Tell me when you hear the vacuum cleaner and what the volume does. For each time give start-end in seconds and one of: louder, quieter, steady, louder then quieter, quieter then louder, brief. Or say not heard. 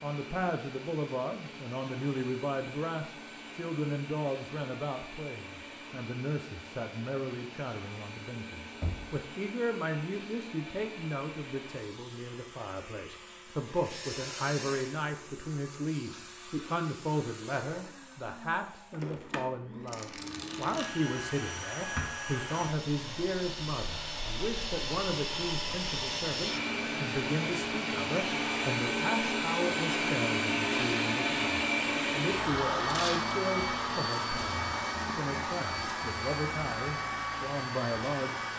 0.0-38.5 louder.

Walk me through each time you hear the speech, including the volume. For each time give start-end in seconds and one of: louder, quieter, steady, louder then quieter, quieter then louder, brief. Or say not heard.
0.0-38.5 steady.